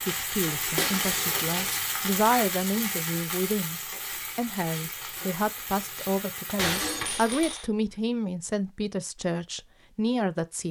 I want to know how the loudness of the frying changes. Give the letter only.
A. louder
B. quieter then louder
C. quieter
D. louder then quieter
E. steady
C.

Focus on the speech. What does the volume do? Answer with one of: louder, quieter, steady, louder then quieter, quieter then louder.
steady.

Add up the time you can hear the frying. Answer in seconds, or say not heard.
7 s.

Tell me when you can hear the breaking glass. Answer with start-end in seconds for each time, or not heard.
0.8-1.8, 6.5-7.7.